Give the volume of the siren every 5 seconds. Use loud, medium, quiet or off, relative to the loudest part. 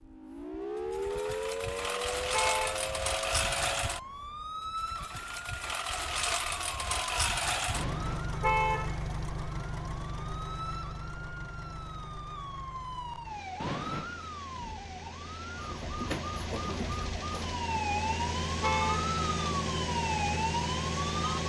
loud, medium, medium, loud, loud.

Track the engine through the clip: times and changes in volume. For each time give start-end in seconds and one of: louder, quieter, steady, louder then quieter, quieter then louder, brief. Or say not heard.
0.0-21.4 quieter then louder.